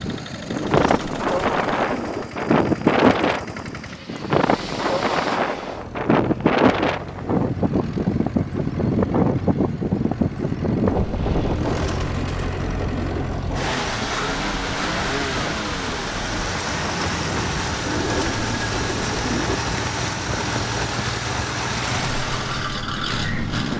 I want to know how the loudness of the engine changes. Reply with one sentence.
The loudness of the engine goes up.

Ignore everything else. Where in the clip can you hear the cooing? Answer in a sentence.
The cooing can be heard from 0.5 to 2.2 s, from 11.4 to 13.2 s and from 17.8 to 19.6 s.